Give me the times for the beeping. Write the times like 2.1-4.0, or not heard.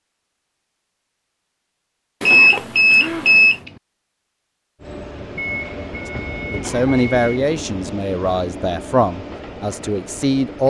2.2-3.5, 5.3-7.4.